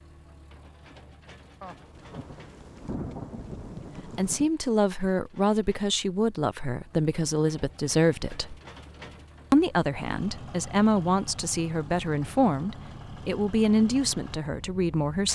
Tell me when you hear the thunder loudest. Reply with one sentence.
The volume of the thunder peaks at 3 seconds.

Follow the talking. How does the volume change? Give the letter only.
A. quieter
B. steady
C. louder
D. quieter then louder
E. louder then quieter
B.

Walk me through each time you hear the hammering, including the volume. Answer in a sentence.
The hammering can't be heard in this clip.